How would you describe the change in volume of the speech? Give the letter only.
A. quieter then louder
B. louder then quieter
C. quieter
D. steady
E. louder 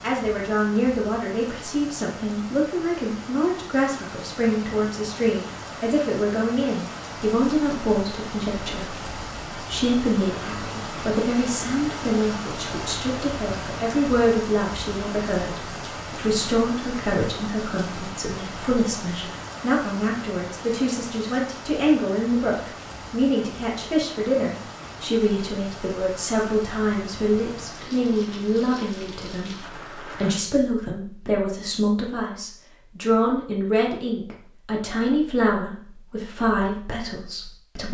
D.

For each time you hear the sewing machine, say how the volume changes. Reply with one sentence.
The sewing machine can't be heard in this clip.